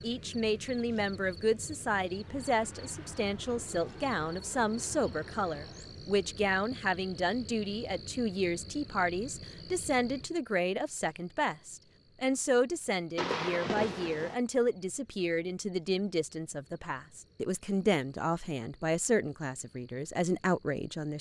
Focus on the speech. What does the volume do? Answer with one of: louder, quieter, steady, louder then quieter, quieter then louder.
steady.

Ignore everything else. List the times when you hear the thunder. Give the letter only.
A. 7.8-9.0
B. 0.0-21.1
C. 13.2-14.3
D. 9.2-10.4
C.